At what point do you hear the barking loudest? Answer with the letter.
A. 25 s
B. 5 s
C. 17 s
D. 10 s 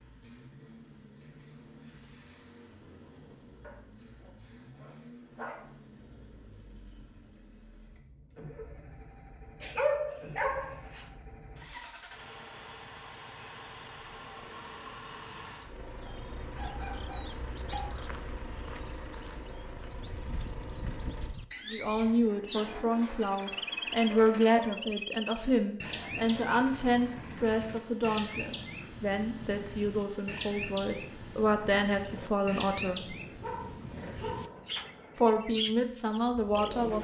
D.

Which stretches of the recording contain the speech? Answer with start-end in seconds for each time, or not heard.
21.7-33.0, 35.1-37.0.